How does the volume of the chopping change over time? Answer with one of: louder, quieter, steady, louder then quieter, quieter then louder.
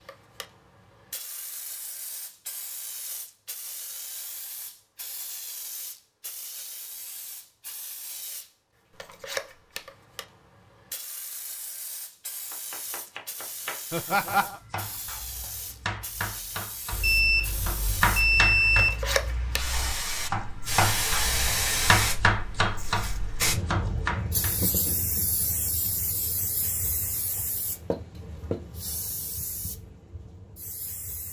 louder.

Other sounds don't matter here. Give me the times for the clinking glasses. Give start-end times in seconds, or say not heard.
not heard.